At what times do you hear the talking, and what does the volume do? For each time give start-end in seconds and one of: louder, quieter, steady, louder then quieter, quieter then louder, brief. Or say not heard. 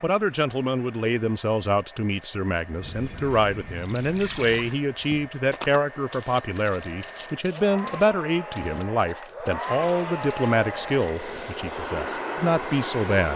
0.0-13.3 steady.